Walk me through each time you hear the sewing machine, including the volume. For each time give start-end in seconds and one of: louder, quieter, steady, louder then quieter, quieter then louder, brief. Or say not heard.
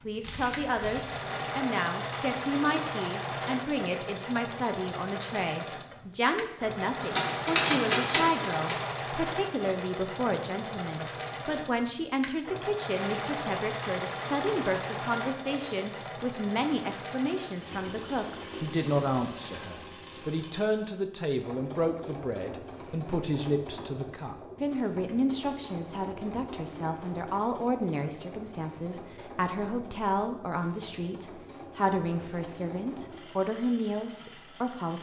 0.0-34.9 quieter.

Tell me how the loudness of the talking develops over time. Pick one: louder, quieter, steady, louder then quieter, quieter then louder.
steady.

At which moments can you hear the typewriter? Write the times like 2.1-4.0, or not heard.
7.0-8.8.